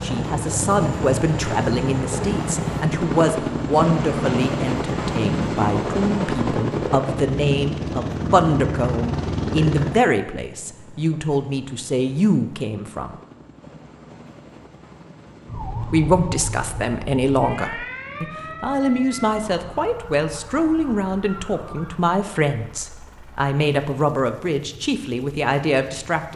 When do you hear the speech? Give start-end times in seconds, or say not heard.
0.0-13.2, 15.8-26.3.